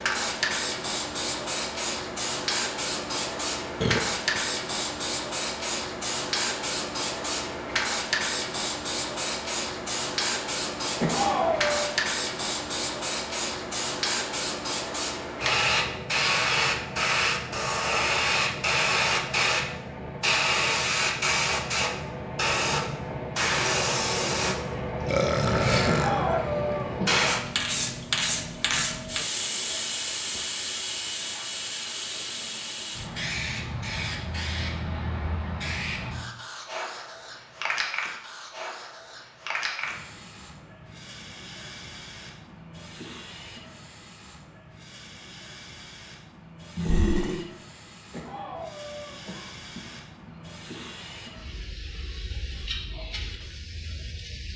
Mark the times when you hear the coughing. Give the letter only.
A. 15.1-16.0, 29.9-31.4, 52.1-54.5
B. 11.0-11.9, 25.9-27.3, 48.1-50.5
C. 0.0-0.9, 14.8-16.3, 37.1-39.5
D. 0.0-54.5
B.